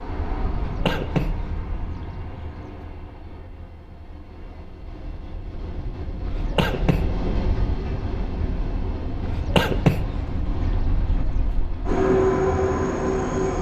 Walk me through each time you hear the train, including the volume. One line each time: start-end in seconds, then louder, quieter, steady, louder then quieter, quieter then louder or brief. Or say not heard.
0.0-13.5 quieter then louder.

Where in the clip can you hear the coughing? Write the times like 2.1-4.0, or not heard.
0.5-2.9, 6.2-7.1, 9.2-11.6.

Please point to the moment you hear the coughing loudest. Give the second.
10 s.